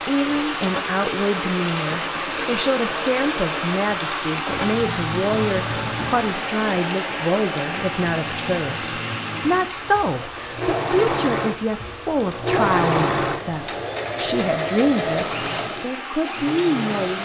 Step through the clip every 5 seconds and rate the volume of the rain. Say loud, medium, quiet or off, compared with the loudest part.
loud, loud, medium, medium.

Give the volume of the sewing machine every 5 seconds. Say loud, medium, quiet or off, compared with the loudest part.
medium, medium, loud, loud.